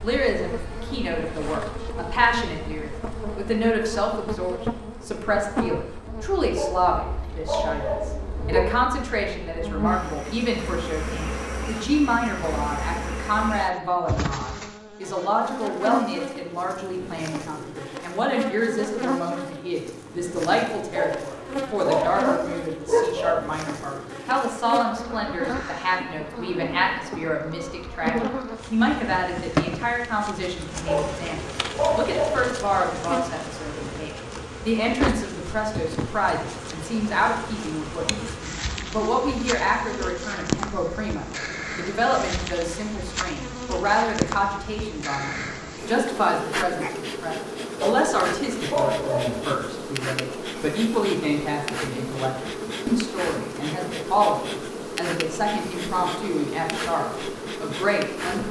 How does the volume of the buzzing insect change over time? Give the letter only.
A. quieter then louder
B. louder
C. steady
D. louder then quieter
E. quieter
C.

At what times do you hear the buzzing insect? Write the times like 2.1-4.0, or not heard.
0.0-58.4.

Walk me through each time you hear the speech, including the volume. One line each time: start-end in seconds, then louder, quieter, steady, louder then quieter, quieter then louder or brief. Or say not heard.
0.0-58.4 steady.